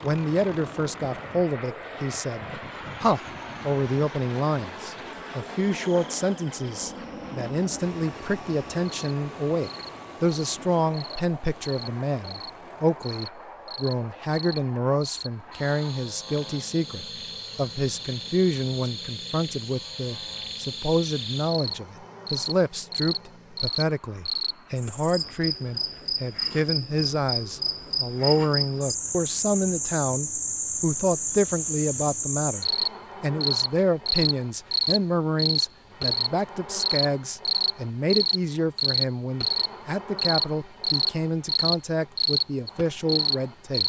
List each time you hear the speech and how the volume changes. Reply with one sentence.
The speech can be heard from 0.0 to 43.8 s, at a steady volume.